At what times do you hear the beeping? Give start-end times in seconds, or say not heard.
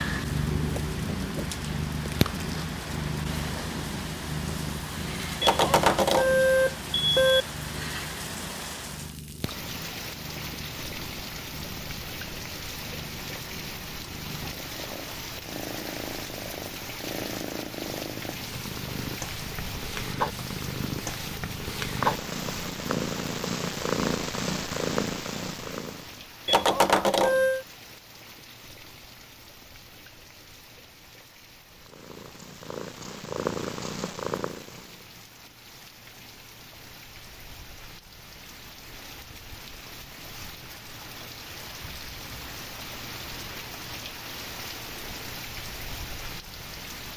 5.4-7.5, 26.4-27.6.